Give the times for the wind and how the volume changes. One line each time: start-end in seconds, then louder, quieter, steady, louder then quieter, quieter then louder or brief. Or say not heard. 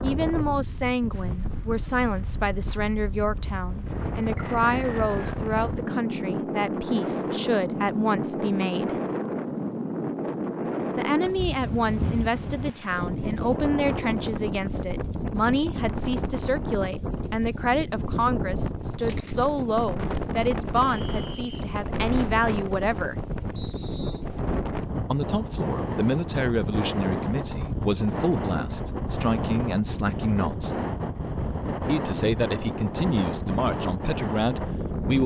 0.0-35.2 steady.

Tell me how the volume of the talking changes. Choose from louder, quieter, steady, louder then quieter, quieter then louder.
steady.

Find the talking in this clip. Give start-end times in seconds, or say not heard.
0.0-8.9, 10.9-23.1, 25.1-30.8, 31.9-35.2.